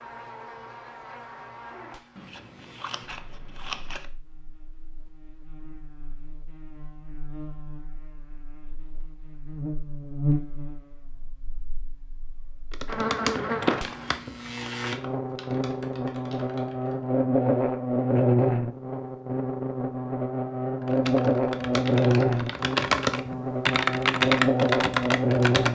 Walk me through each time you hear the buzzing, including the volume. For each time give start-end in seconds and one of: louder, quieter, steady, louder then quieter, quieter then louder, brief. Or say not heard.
0.0-25.7 louder.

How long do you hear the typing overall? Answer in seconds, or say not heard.
9 s.